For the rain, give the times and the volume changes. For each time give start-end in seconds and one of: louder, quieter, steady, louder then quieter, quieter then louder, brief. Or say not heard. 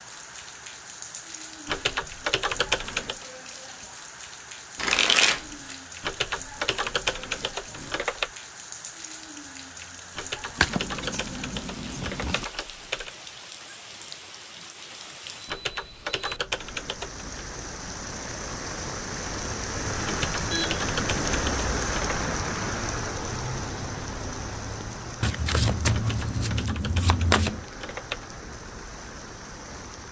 0.0-30.0 louder then quieter.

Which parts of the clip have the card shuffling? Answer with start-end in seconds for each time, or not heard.
4.8-5.8, 10.6-12.4, 25.2-27.6.